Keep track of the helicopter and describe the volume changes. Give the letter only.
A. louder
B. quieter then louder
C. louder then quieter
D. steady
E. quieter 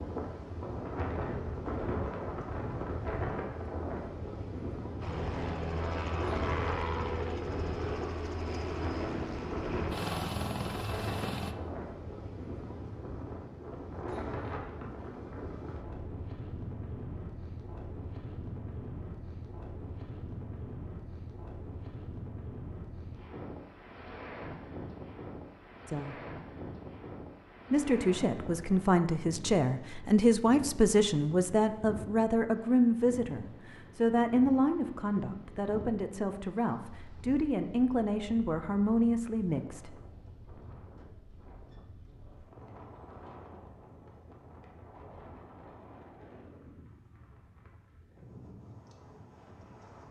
D.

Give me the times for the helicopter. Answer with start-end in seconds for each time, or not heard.
5.0-11.6.